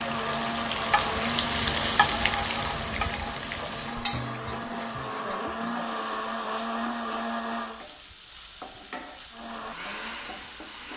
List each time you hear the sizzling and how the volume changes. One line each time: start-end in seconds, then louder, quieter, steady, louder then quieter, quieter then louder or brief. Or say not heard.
0.0-10.9 quieter.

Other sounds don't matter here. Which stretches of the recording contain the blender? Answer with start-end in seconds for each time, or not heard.
0.0-7.8, 9.3-10.9.